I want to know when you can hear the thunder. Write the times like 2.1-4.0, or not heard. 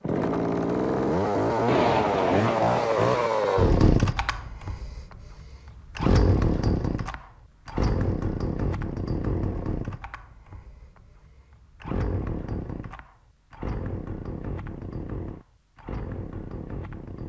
1.6-3.3.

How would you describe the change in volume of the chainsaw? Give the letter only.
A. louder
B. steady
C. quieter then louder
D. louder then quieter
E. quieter
E.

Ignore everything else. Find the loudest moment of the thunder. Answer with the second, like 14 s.
2 s.